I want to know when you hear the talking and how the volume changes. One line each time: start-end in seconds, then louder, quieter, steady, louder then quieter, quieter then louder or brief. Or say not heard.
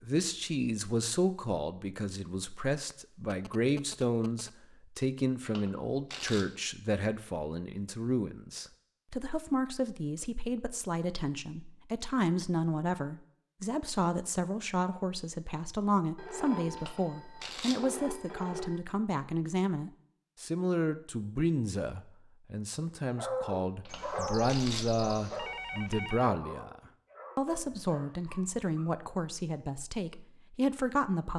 0.0-31.3 steady.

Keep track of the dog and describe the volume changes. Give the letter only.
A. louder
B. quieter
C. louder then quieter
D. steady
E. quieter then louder
B.